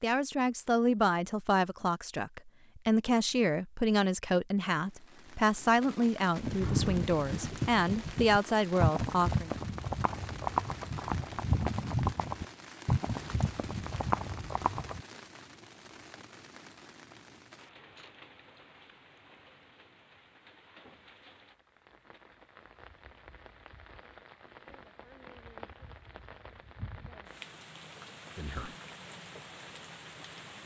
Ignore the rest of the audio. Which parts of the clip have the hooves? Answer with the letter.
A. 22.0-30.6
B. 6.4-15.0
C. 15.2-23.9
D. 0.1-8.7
B.